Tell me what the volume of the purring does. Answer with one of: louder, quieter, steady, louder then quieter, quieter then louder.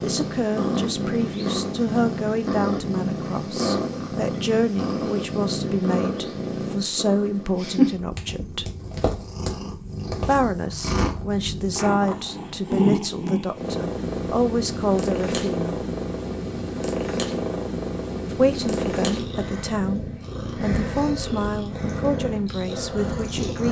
steady.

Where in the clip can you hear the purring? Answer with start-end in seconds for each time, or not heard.
0.0-23.6.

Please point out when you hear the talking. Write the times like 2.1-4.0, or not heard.
0.0-8.7, 10.1-15.7, 18.3-23.6.